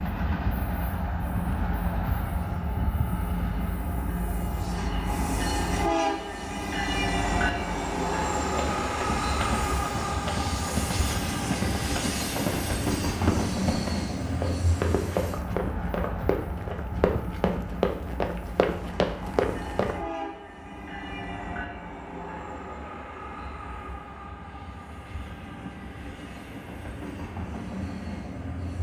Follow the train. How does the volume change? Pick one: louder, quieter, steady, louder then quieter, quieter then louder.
quieter.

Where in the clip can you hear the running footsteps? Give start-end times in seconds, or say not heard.
8.5-19.9.